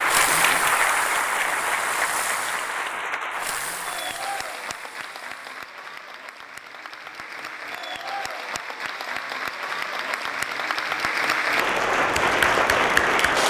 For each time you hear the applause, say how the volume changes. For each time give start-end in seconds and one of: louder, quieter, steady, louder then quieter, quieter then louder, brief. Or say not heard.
0.0-13.4 quieter then louder.